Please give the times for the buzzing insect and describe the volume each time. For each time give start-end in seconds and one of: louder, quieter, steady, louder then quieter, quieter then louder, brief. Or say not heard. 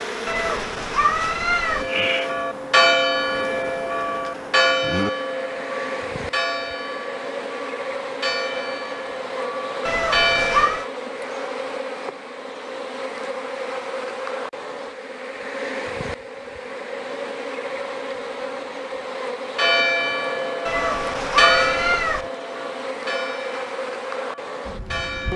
0.0-25.3 steady.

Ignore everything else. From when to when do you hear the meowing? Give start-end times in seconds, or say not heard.
0.2-1.9, 9.8-10.8, 20.6-22.3.